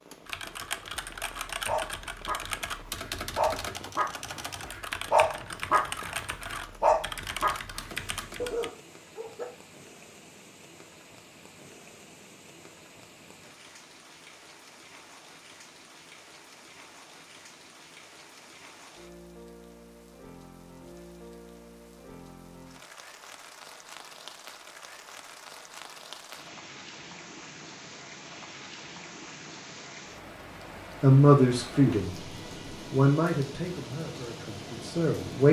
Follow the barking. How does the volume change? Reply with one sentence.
The volume of the barking goes up, then down.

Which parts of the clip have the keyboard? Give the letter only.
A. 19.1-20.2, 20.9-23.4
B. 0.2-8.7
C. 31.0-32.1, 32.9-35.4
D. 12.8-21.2
B.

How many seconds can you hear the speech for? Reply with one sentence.
The speech can be heard for 4 seconds in total.